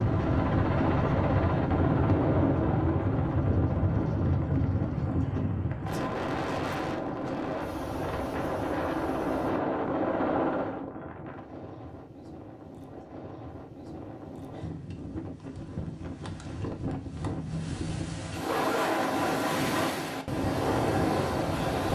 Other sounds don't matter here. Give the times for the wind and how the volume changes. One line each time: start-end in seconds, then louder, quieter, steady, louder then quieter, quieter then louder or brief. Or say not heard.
0.0-21.9 quieter then louder.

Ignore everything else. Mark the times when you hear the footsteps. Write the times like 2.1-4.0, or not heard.
not heard.